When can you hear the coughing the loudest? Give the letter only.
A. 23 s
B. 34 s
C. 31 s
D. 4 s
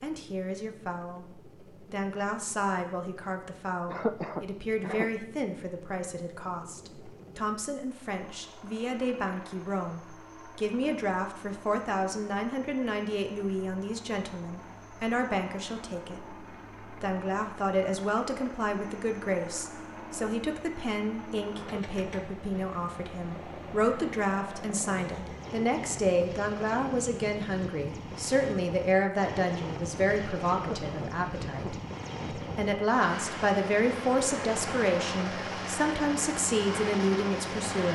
D.